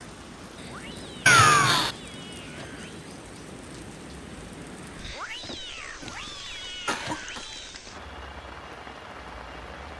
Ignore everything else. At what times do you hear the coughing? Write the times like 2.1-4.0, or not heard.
1.2-1.9, 6.0-7.4.